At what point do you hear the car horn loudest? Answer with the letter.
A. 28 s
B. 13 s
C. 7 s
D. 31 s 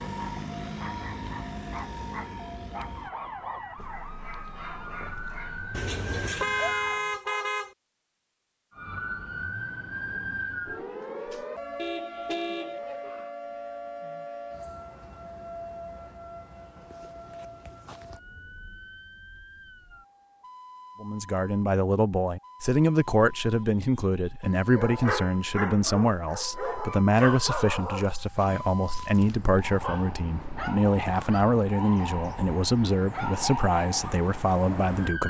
C.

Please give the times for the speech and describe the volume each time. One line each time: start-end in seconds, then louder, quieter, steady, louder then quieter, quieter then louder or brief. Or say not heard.
21.0-35.2 steady.